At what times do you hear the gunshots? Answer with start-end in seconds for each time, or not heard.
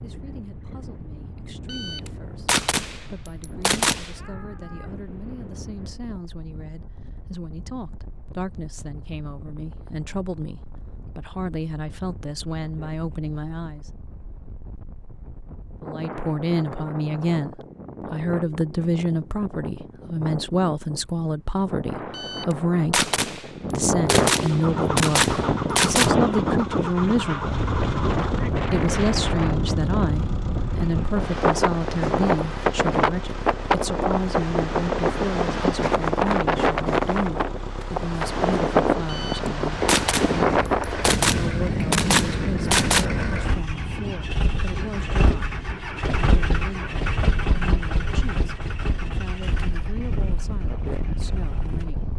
1.6-4.2, 22.1-26.1, 39.0-43.0.